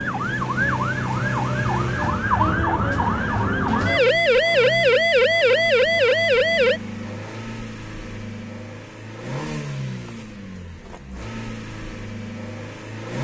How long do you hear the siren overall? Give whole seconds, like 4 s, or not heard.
7 s.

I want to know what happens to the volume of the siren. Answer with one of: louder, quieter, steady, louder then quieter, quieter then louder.
louder.